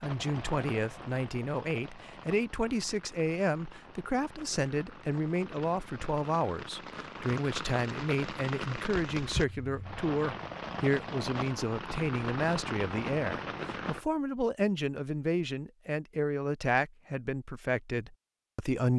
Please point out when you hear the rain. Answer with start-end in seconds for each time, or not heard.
0.0-14.1.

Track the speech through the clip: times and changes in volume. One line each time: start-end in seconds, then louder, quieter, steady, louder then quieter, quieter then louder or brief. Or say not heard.
0.0-18.9 steady.